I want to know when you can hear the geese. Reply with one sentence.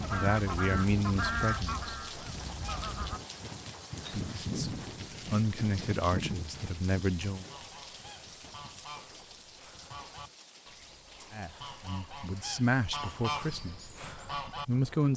The geese can be heard from 0.0 to 3.2 s and from 7.5 to 14.7 s.